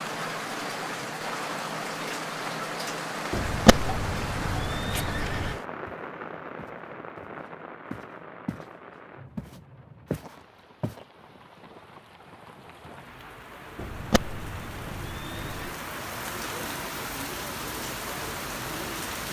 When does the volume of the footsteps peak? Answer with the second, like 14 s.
10 s.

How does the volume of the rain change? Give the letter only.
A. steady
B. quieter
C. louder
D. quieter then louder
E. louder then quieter
D.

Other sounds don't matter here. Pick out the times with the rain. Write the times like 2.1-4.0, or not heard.
0.0-19.2.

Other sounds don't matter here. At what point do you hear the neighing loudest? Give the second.
4 s.